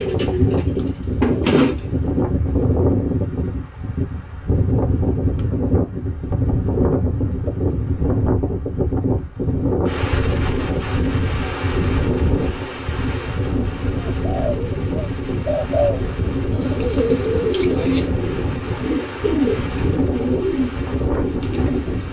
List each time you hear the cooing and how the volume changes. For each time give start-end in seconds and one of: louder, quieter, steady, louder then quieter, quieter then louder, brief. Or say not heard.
0.0-1.9 brief
14.2-22.0 steady.